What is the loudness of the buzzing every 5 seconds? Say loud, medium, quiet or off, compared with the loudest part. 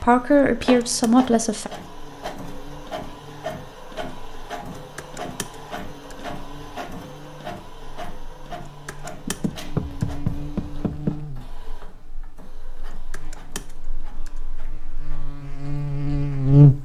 quiet, quiet, quiet, loud.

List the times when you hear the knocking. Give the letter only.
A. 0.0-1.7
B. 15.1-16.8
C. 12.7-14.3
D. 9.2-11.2
D.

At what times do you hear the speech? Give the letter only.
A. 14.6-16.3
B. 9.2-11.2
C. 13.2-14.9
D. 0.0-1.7
D.